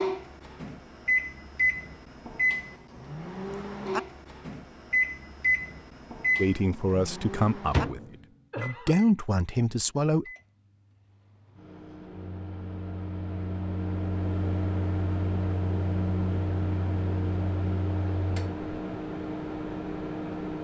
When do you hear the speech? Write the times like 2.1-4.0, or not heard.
6.3-10.2.